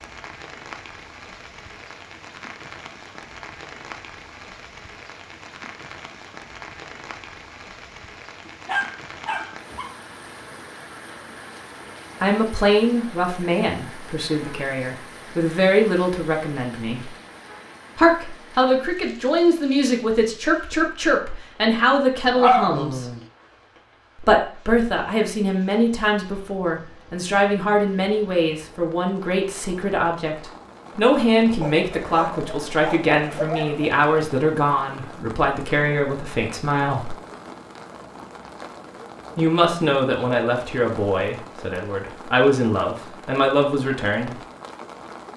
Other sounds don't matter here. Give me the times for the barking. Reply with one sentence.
You can hear the barking from 8.4 to 9.9 s, from 22.4 to 23.2 s and from 31.6 to 33.9 s.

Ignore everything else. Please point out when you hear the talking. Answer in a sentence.
The talking can be heard from 12.2 to 17.1 s, from 17.9 to 23.1 s, from 24.1 to 37.1 s and from 39.4 to 44.4 s.